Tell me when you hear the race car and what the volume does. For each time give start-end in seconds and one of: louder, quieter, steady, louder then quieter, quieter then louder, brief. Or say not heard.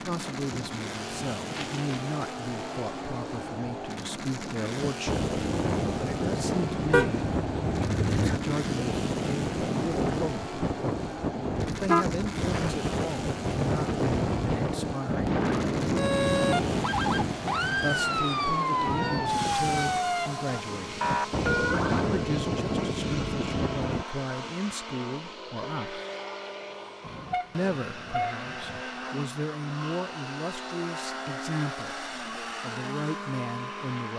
0.0-34.1 steady.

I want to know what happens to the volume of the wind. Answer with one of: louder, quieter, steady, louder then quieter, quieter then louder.
louder.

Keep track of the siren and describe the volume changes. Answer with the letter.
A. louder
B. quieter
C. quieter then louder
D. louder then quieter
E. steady
E.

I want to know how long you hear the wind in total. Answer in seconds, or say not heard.
24 s.